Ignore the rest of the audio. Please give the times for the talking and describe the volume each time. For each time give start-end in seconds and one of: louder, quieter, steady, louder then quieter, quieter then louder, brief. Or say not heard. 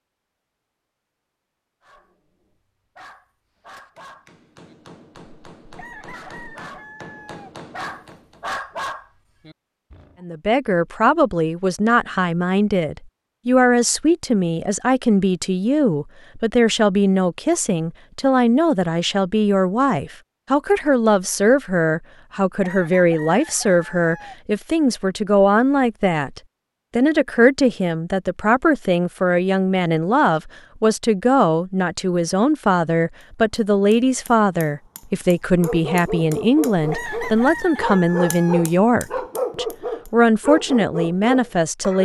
10.2-41.9 steady.